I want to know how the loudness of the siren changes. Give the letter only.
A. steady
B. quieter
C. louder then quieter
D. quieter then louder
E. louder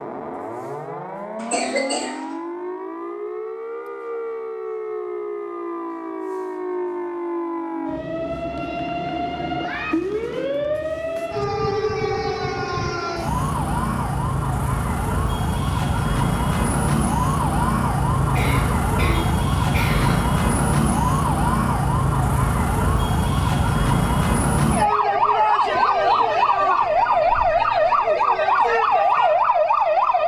E.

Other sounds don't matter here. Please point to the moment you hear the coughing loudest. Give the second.
2 s.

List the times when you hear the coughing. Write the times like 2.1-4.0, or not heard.
1.4-2.2, 18.4-20.2.